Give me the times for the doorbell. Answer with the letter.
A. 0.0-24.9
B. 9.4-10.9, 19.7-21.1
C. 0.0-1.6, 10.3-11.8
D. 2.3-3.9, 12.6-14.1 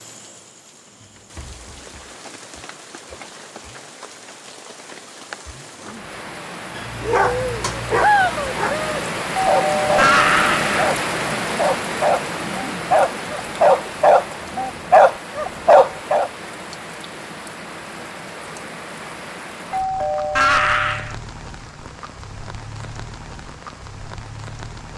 B.